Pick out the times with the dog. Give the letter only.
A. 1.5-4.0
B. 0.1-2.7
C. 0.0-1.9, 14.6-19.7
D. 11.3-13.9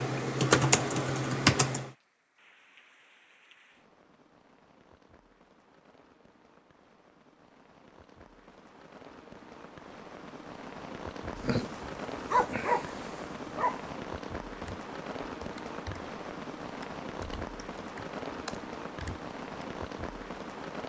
D.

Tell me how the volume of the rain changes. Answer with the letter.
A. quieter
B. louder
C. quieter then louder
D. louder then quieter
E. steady
B.